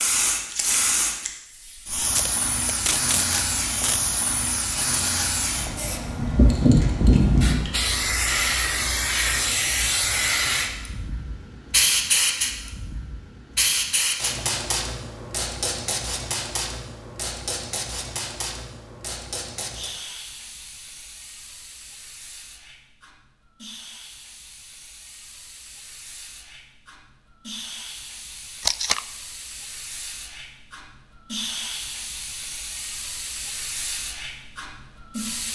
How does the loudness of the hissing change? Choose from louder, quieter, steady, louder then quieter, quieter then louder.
quieter then louder.